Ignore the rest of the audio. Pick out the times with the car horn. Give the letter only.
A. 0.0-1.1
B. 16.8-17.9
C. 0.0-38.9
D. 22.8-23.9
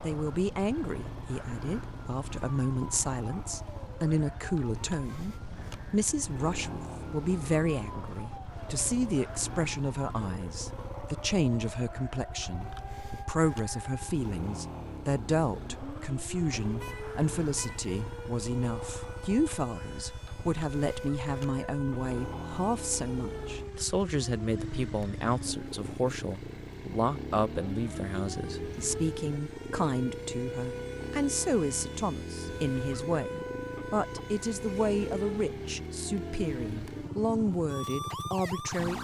B.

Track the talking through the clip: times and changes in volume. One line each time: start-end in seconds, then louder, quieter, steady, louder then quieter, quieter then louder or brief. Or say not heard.
0.0-38.9 steady.